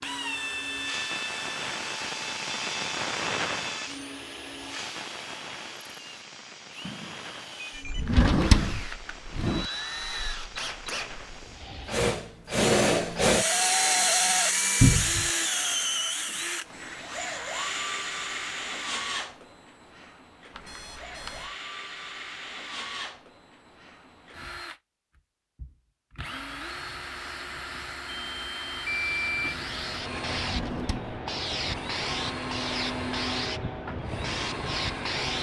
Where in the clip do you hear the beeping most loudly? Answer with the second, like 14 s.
29 s.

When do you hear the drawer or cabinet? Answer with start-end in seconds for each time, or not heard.
8.0-9.7, 14.8-15.3, 30.4-31.2.